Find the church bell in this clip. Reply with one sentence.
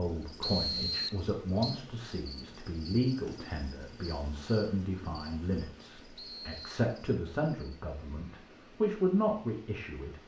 The church bell can't be heard in this clip.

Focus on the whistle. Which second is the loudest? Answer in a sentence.
The loudest moment of the whistle is at 1 second.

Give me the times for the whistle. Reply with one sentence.
You can hear the whistle from 0.4 to 1.8 s and from 6.2 to 6.7 s.